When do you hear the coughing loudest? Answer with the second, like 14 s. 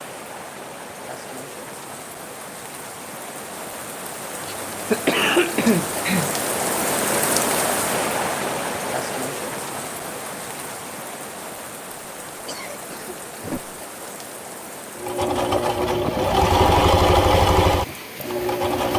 5 s.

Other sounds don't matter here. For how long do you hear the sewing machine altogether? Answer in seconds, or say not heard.
4 s.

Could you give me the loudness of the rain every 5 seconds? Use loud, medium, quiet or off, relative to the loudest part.
medium, loud, medium, medium.